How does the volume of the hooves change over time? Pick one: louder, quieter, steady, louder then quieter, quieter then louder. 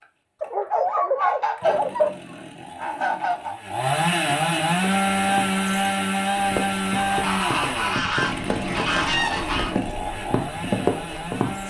louder.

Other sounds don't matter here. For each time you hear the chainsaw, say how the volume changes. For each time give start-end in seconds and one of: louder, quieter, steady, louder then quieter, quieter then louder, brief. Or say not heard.
0.0-11.6 louder then quieter.